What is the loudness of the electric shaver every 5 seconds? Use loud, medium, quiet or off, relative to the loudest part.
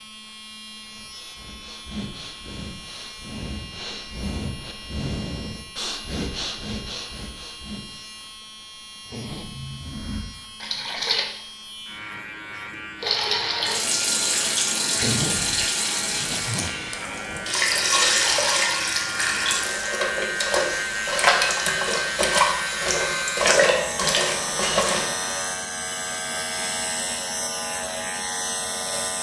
quiet, quiet, medium, medium, loud, loud.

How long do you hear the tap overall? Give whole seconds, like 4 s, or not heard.
14 s.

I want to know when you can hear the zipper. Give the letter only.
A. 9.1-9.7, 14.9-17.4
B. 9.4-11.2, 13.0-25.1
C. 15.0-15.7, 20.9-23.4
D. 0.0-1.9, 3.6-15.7
A.